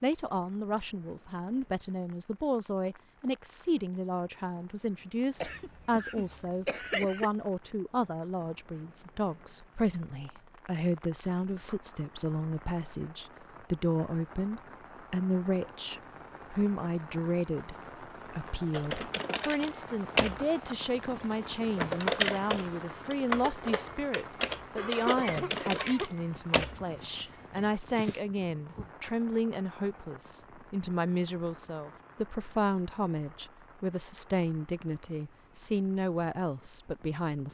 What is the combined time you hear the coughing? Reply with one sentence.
You can hear the coughing for 3 seconds altogether.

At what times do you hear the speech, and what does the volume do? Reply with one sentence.
You can hear the speech from 0.0 to 37.4 s, at a steady volume.